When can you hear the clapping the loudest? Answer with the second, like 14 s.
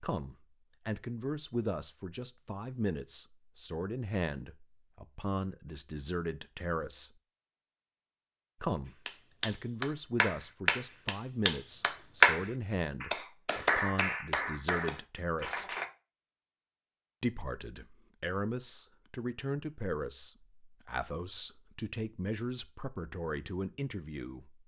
12 s.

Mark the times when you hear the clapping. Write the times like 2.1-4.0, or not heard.
9.1-15.9.